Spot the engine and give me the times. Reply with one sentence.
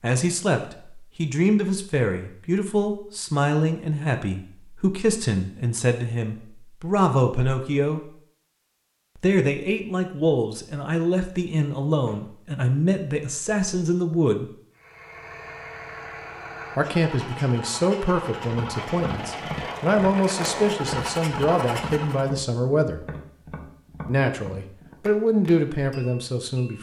You can hear the engine from 14.7 to 22.3 s.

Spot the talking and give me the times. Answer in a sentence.
The talking can be heard from 0.0 to 8.1 s, from 9.2 to 14.5 s, from 16.8 to 23.0 s and from 24.1 to 26.7 s.